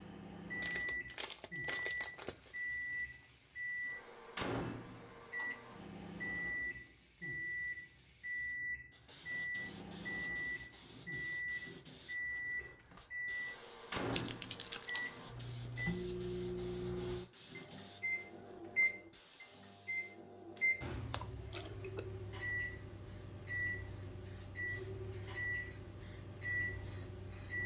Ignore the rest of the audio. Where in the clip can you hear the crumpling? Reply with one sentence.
You can hear the crumpling from 0.6 to 2.6 s and from 14.1 to 15.1 s.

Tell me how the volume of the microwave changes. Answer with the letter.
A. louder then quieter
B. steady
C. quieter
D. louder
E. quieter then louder
B.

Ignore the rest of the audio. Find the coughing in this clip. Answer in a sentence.
The coughing can be heard from 21.1 to 22.0 s.